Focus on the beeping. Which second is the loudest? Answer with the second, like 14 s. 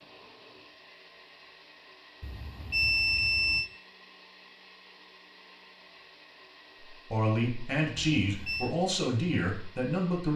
3 s.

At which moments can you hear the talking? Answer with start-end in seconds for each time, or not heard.
6.9-10.3.